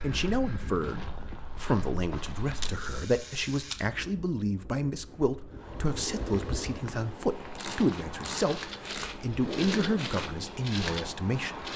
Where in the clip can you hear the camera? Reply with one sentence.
You can hear the camera from 2.6 to 3.9 s and from 7.5 to 9.2 s.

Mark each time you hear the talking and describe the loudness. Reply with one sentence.
The talking can be heard from 0.0 to 11.7 s, at a steady volume.